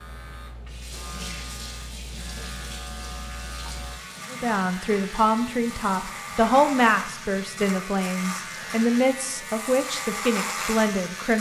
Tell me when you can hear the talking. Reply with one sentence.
The talking can be heard from 4.3 to 11.3 s.